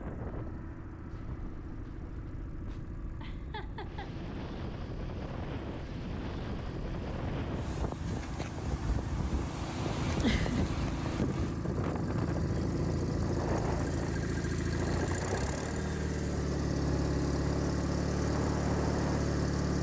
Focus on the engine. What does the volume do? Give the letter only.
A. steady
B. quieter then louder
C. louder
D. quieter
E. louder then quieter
C.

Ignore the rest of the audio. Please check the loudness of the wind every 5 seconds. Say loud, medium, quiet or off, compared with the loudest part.
medium, loud, loud, loud.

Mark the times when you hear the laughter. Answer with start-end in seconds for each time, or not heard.
3.2-4.2, 10.1-10.7.